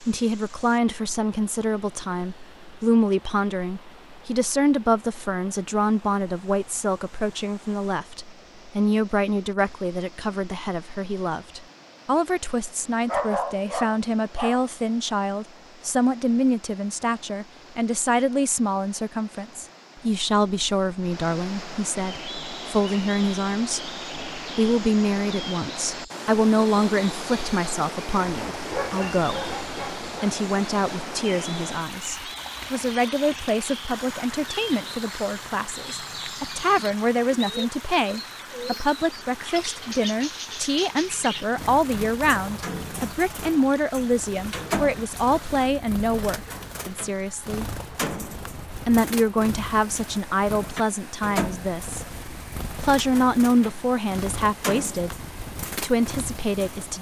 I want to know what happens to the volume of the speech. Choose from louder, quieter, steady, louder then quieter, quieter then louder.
steady.